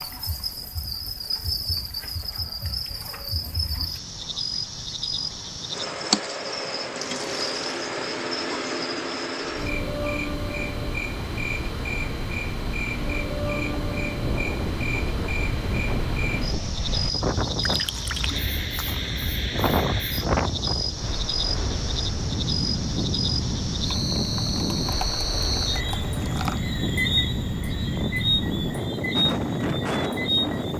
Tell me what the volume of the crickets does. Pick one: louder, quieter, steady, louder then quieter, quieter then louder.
steady.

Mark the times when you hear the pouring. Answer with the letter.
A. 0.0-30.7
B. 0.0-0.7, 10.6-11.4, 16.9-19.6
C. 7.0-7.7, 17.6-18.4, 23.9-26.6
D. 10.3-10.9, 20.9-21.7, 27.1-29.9
C.